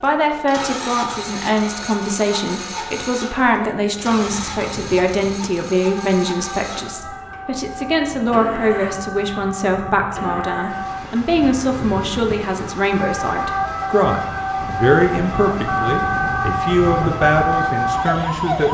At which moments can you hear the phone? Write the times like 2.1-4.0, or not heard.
not heard.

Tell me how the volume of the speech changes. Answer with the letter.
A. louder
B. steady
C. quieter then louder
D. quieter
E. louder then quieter
B.